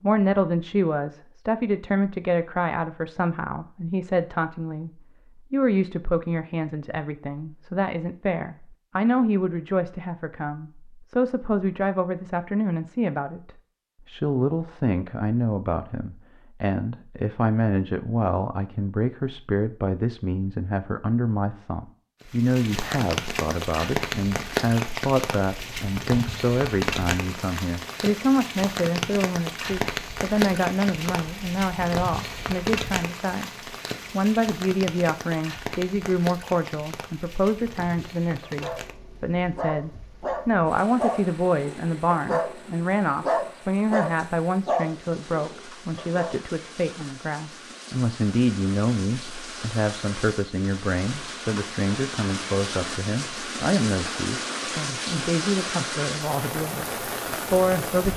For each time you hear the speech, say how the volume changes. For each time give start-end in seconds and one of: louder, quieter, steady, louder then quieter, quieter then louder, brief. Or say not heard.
0.0-58.1 steady.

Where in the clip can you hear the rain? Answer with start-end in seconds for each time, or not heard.
22.2-58.1.